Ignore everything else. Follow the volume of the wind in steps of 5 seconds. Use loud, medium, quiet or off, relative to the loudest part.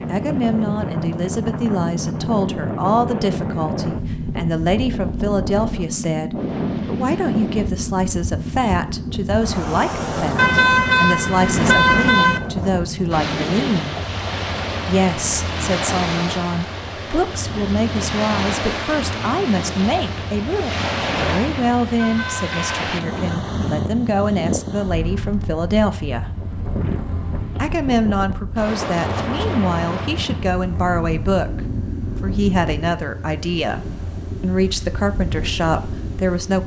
loud, loud, loud, loud, loud, loud, medium, medium.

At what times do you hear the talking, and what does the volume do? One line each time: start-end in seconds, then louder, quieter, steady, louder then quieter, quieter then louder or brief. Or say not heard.
0.1-14.0 steady
14.8-26.3 steady
27.6-36.6 steady.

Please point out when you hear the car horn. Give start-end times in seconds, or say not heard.
10.3-12.4, 21.9-23.4.